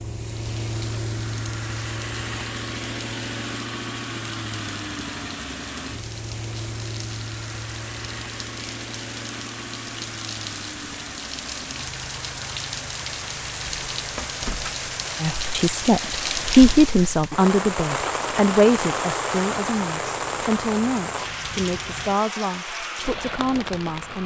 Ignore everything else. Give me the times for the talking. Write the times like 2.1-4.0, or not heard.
15.2-24.2.